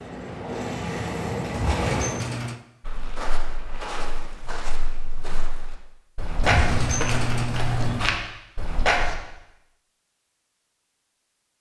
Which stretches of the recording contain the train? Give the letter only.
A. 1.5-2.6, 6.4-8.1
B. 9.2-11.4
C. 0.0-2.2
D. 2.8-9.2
C.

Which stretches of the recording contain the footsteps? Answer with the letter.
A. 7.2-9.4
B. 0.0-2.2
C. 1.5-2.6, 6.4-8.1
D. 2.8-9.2
D.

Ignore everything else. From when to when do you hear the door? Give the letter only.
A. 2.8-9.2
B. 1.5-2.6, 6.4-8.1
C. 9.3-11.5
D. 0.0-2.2
B.